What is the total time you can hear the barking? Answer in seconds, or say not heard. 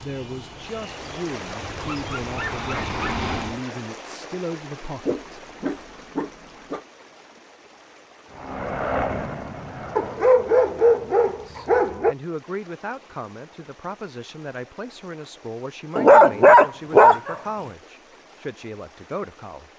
7 s.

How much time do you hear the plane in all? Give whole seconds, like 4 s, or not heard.
6 s.